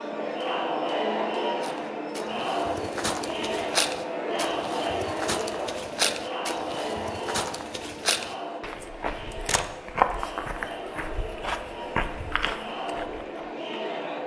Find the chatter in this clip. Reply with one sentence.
You can hear the chatter from 0.0 to 14.2 s.